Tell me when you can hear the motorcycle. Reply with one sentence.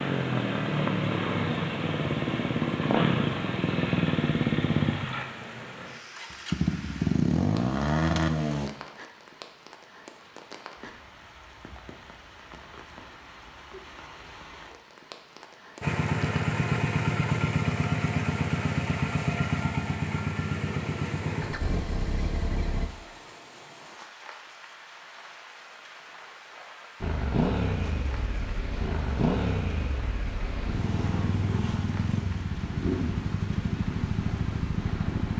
You can hear the motorcycle from 0.0 to 8.7 s, from 15.8 to 22.9 s and from 27.0 to 35.3 s.